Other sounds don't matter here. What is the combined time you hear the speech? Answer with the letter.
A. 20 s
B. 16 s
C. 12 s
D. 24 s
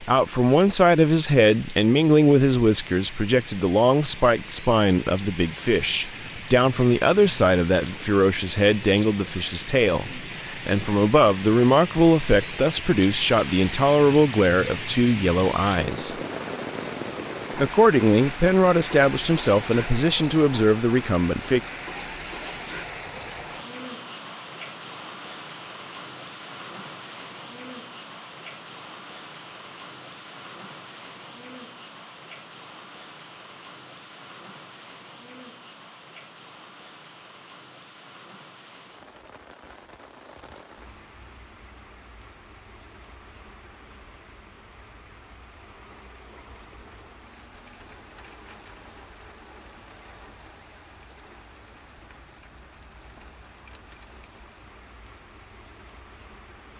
A.